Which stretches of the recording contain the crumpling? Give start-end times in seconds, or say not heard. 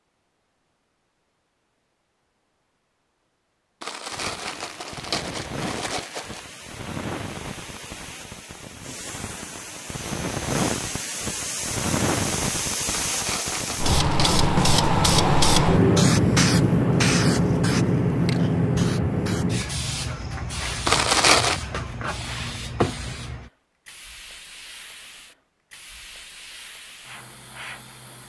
3.8-6.5, 12.8-14.4, 20.9-21.6.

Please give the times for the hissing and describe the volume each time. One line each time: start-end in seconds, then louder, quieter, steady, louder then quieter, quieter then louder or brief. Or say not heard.
4.1-28.2 louder then quieter.